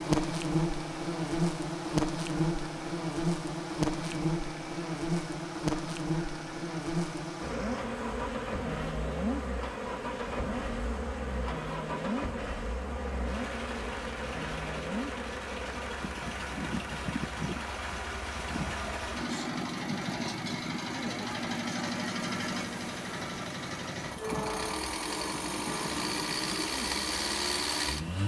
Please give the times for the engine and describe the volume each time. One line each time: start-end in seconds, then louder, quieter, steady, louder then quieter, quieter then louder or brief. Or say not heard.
0.1-28.2 louder.